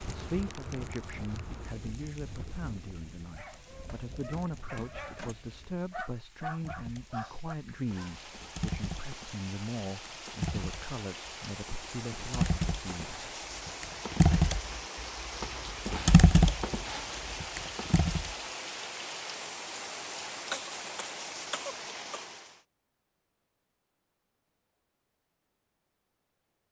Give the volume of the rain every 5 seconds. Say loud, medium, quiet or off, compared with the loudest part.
medium, medium, loud, loud, loud, off.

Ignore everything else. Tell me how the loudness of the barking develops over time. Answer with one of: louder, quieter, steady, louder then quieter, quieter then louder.
louder.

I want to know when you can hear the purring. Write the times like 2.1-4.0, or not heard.
not heard.